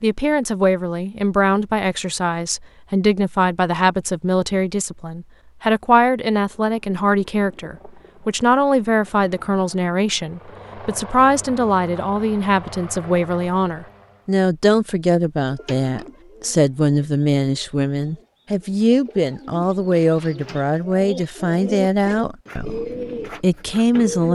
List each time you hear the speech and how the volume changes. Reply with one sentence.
The speech can be heard from 0.0 to 24.3 s, at a steady volume.